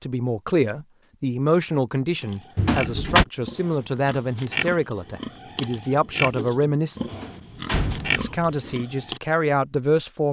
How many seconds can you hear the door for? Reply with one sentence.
You can hear the door for 2 seconds altogether.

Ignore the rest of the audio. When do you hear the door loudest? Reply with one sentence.
The volume of the door peaks at 3 seconds.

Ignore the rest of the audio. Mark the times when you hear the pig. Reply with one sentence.
You can hear the pig from 2.2 to 9.2 s.